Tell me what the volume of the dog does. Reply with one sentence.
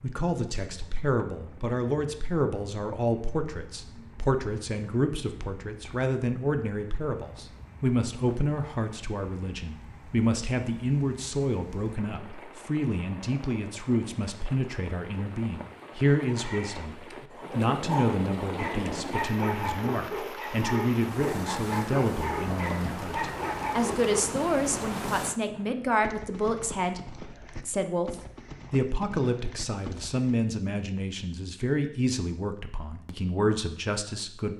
The loudness of the dog goes up.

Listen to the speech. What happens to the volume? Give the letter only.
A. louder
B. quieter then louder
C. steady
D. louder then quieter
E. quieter
C.